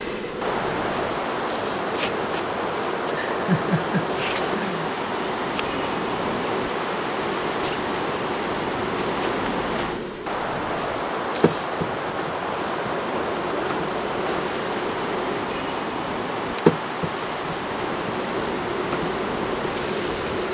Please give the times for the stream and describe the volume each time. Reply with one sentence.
You can hear the stream from 0.2 to 20.4 s, at a steady volume.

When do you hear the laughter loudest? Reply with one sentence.
The loudest moment of the laughter is at 4 seconds.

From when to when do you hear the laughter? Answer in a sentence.
You can hear the laughter from 3.1 to 4.9 s.